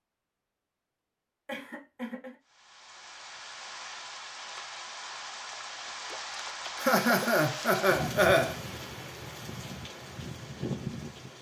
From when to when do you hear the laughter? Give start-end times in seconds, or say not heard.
1.4-2.4, 6.8-8.6.